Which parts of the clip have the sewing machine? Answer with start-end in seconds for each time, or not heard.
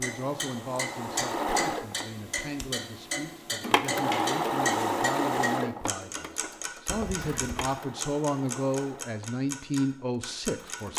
0.0-2.1, 3.6-10.9.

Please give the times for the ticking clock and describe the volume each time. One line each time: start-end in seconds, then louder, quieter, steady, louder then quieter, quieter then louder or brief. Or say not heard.
0.0-10.9 steady.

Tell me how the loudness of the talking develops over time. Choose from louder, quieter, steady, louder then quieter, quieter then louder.
louder.